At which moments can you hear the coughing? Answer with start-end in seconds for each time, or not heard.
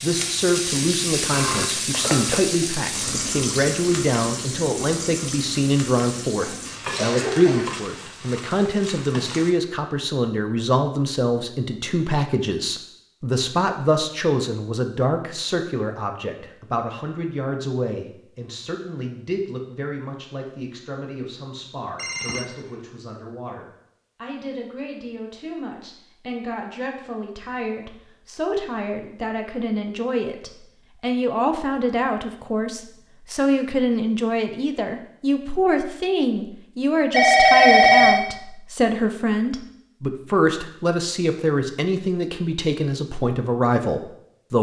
6.4-7.8.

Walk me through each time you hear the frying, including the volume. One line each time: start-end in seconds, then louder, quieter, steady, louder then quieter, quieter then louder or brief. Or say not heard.
0.0-9.6 quieter.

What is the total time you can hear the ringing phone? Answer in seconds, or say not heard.
3 s.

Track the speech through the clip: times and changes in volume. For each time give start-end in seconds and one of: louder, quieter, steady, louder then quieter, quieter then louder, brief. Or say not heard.
0.0-44.5 quieter then louder.